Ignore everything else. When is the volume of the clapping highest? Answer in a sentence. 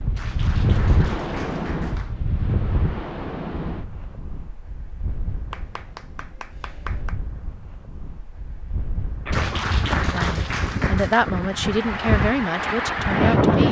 The loudest moment of the clapping is at 10 seconds.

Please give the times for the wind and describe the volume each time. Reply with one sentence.
You can hear the wind from 0.0 to 13.6 s, getting quieter then louder.